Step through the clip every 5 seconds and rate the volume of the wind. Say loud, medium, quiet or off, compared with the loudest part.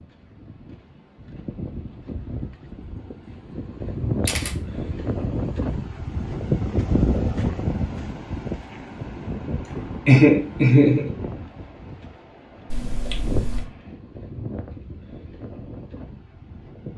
medium, loud, medium, quiet.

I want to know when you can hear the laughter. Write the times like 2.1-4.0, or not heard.
10.1-11.1.